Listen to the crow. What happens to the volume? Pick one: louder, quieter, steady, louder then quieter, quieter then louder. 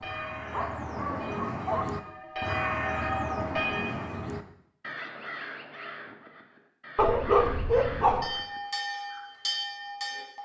quieter.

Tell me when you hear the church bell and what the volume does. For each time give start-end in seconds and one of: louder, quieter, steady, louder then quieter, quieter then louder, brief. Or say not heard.
0.0-4.2 louder
7.7-10.4 brief.